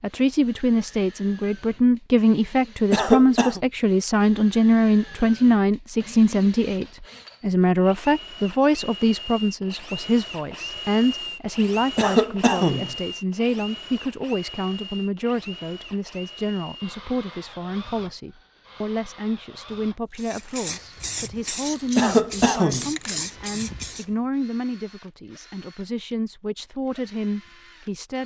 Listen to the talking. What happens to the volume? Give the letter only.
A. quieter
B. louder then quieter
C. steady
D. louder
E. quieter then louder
A.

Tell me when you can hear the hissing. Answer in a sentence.
The hissing can be heard from 20.1 to 24.1 s.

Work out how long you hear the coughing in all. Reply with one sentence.
The coughing can be heard for 3 seconds in total.